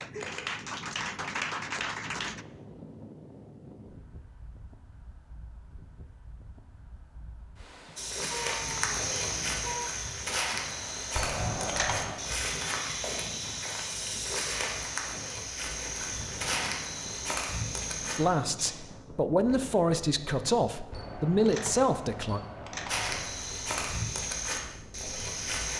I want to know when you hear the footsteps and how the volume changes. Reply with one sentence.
You can hear the footsteps from 8.0 to 18.7 s, at a steady volume; and briefly from 22.9 to 25.7 s.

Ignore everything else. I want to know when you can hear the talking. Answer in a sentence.
You can hear the talking from 18.1 to 22.4 s.